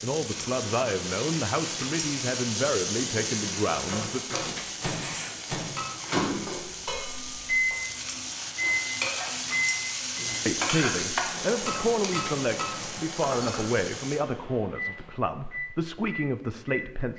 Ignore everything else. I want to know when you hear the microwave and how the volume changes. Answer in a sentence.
You can hear the microwave from 0.2 to 17.1 s, getting louder then quieter.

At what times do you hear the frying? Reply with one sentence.
The frying can be heard from 0.0 to 14.2 s.